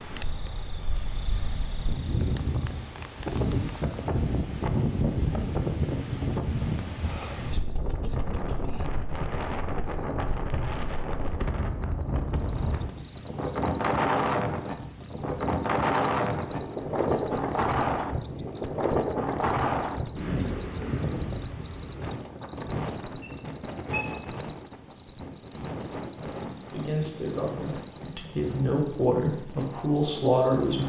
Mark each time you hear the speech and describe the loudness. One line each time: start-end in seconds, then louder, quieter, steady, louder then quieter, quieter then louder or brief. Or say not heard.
26.7-30.8 louder.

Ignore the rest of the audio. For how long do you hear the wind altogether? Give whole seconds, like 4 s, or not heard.
31 s.